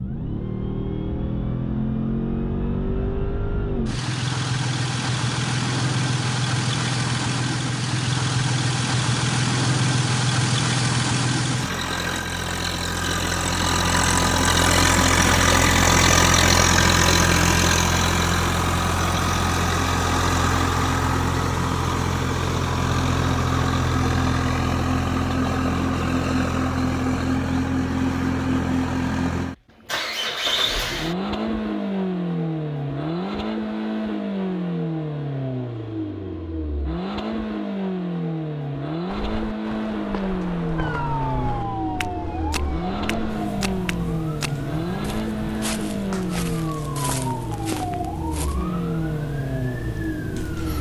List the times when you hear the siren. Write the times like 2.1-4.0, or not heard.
40.8-50.7.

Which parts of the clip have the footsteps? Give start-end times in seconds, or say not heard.
39.0-48.6.